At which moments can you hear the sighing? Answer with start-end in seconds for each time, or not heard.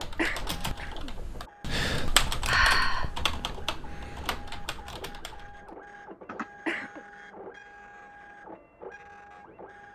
2.5-3.1, 6.2-7.0.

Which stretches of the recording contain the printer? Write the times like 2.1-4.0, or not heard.
0.0-9.9.